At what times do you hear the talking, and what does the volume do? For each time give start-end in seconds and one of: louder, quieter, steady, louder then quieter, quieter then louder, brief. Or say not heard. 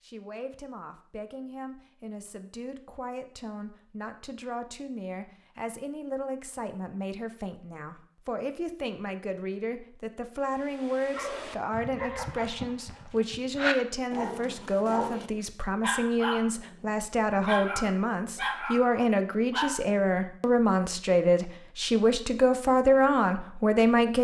0.0-24.1 louder.